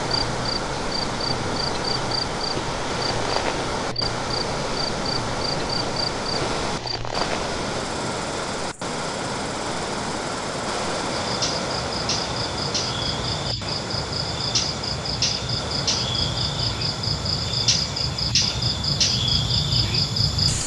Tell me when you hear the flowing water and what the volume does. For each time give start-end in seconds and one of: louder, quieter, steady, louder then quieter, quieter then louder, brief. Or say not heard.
0.0-20.6 quieter.